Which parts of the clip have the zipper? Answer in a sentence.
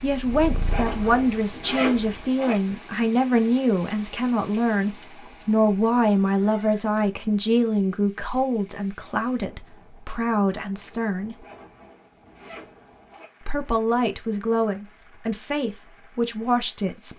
You can hear the zipper from 0.7 to 2.5 s and from 11.4 to 13.2 s.